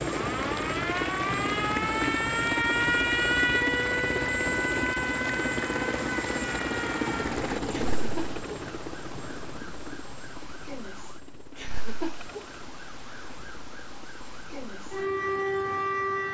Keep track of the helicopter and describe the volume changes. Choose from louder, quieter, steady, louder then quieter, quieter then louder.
quieter.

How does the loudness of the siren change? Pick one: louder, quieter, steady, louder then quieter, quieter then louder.
quieter then louder.